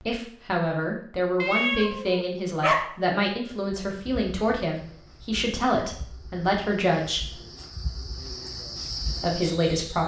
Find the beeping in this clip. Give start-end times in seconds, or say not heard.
not heard.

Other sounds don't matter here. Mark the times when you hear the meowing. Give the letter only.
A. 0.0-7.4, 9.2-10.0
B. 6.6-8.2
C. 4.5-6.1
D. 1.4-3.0
D.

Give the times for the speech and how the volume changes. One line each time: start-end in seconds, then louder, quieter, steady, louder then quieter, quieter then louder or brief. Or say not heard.
0.0-7.4 steady
9.2-10.0 brief.